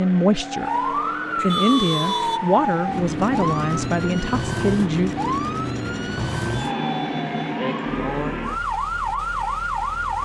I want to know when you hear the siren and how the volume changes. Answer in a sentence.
The siren can be heard from 0.0 to 10.2 s, at a steady volume.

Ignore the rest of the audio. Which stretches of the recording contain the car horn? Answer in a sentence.
You can hear the car horn from 1.4 to 2.4 s and from 6.7 to 7.6 s.